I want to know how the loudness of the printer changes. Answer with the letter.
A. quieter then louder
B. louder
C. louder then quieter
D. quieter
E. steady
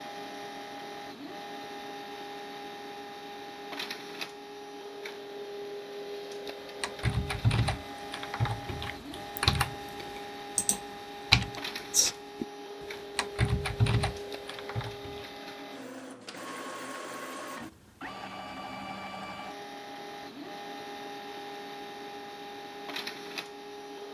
E.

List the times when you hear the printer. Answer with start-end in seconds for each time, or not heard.
0.0-24.1.